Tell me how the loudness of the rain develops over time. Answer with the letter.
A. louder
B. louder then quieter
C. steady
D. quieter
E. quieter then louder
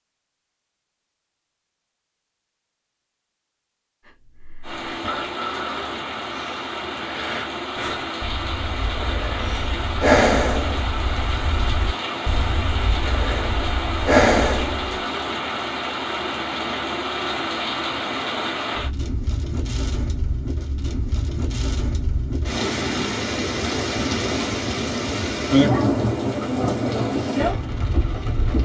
A.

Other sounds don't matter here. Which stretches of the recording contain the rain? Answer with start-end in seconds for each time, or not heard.
4.6-28.6.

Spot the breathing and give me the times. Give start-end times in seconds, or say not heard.
4.0-14.9.